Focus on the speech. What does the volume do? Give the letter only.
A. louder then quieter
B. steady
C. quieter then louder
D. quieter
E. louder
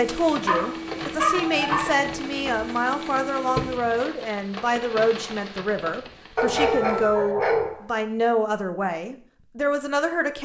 B.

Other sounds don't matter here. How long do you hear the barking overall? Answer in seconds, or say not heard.
3 s.